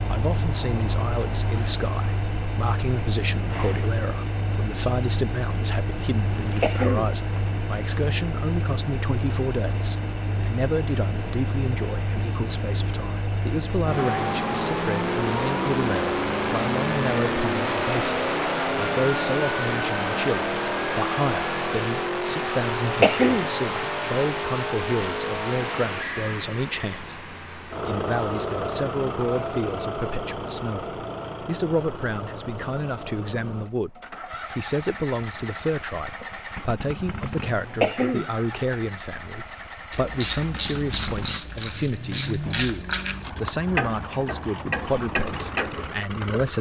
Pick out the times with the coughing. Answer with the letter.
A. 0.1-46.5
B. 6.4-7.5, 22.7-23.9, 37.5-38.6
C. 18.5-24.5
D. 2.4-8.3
B.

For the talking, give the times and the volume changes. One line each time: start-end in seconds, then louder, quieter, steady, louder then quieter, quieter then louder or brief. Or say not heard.
0.1-46.5 steady.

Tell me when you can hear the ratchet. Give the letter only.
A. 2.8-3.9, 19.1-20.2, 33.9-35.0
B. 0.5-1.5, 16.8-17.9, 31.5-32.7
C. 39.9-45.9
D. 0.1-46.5
C.